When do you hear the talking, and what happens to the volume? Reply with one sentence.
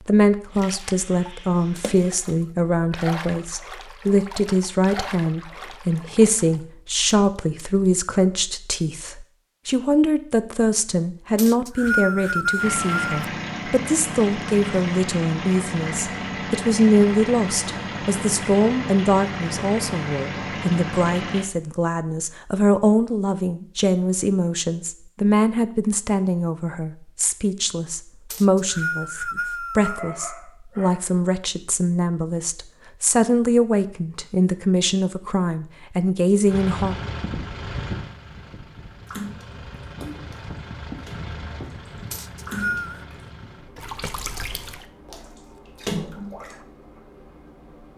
The talking can be heard from 0.0 to 37.0 s, at a steady volume.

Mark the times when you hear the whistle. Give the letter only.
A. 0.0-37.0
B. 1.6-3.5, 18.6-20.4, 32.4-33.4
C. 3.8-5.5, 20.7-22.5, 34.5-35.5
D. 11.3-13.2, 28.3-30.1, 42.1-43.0
D.